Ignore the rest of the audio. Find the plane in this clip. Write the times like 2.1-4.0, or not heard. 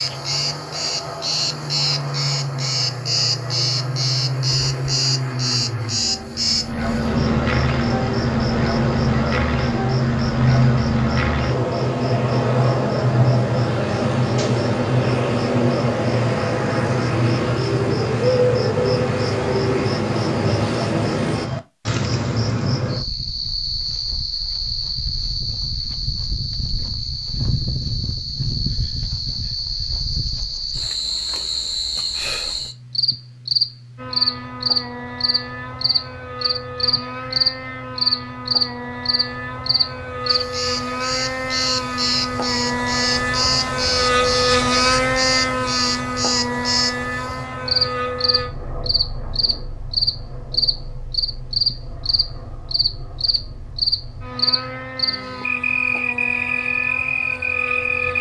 0.0-21.5, 34.0-58.1.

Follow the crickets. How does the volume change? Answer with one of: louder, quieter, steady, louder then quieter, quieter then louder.
steady.